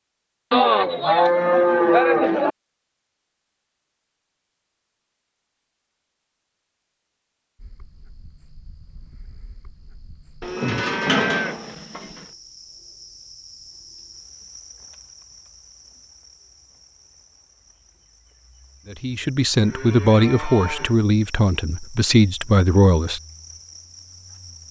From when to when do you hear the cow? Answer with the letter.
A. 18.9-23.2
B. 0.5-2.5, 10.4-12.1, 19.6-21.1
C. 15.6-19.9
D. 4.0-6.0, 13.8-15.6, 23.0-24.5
B.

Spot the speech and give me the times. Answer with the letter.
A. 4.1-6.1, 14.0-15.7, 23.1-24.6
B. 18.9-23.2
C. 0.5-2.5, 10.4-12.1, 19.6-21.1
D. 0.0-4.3
B.